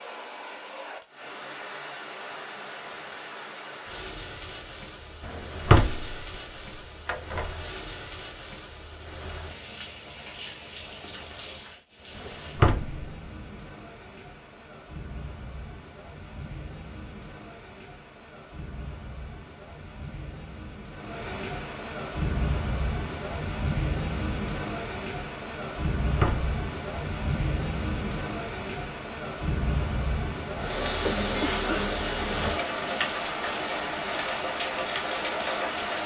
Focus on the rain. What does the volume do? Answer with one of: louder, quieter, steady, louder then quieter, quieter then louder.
louder.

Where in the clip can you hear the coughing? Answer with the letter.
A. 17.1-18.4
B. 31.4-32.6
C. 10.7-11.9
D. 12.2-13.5
B.